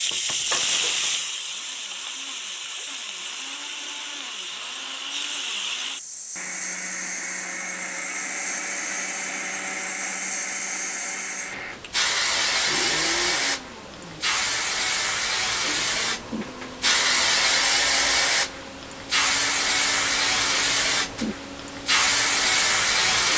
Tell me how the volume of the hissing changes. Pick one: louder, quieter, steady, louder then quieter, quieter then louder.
louder.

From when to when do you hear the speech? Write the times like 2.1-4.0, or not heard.
not heard.